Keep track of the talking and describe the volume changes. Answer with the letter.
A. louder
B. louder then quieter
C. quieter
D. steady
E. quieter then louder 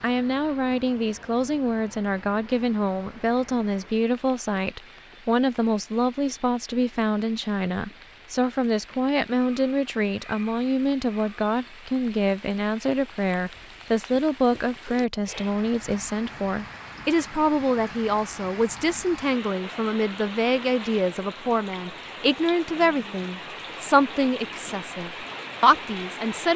D.